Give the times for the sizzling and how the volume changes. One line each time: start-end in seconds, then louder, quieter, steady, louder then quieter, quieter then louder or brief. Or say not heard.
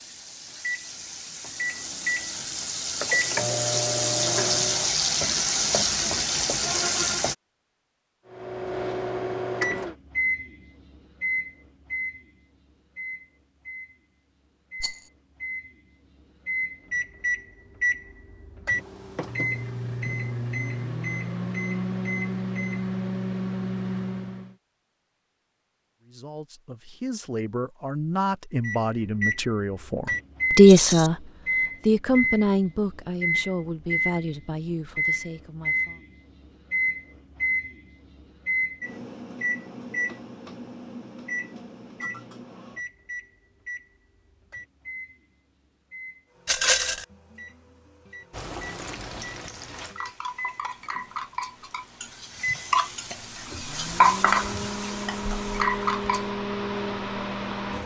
0.0-7.3 louder
48.3-56.3 louder then quieter.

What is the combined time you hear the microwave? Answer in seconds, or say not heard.
50 s.